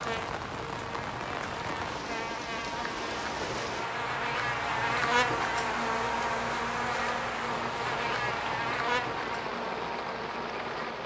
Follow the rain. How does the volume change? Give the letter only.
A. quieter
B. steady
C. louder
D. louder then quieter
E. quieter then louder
B.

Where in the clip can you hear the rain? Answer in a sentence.
The rain can be heard from 0.0 to 11.0 s.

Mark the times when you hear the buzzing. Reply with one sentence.
You can hear the buzzing from 0.0 to 11.0 s.